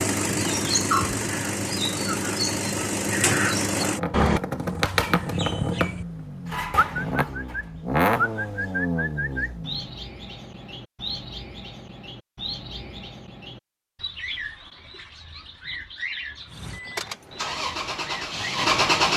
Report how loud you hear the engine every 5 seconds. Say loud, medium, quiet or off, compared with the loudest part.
loud, loud, off, loud.